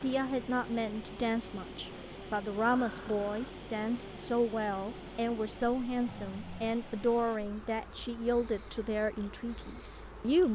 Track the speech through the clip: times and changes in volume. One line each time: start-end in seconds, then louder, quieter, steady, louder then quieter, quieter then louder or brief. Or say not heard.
0.0-10.5 steady.